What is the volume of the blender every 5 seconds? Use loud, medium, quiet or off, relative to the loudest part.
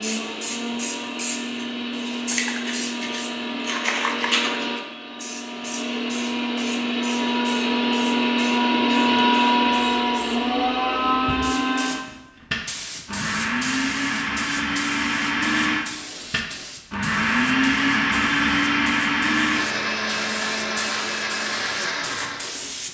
medium, loud, loud, loud, medium.